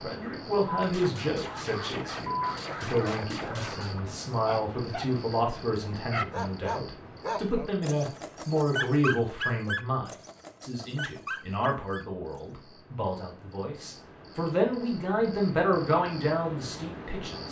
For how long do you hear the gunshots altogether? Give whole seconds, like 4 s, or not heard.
3 s.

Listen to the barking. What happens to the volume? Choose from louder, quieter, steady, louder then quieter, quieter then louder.
louder then quieter.